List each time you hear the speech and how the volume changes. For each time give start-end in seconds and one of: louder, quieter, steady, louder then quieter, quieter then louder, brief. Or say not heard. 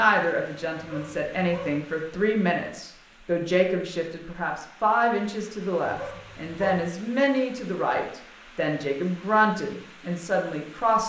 0.0-11.0 steady.